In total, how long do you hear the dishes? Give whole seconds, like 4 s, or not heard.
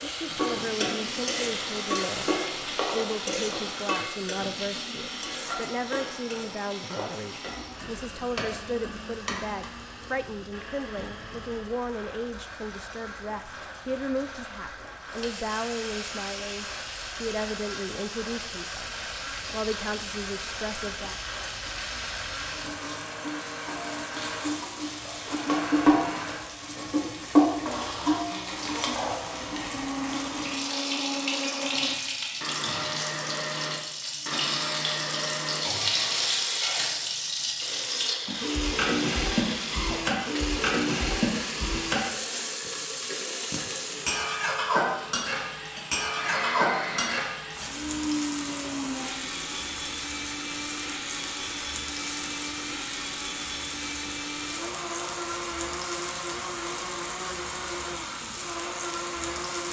not heard.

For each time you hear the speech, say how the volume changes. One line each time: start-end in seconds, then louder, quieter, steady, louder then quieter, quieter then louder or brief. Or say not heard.
0.0-21.1 steady.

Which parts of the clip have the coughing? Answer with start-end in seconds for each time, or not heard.
not heard.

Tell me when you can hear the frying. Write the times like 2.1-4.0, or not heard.
0.0-59.6.